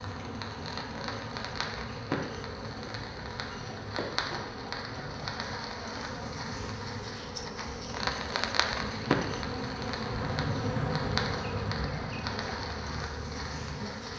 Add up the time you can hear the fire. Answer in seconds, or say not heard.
14 s.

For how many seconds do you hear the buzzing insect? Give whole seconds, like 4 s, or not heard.
14 s.